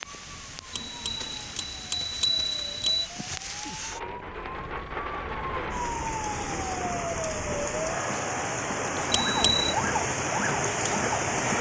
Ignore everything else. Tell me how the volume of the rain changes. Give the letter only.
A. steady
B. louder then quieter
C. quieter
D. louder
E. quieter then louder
D.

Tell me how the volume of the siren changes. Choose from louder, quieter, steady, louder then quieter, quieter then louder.
louder.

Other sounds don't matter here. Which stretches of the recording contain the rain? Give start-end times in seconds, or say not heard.
0.0-11.5.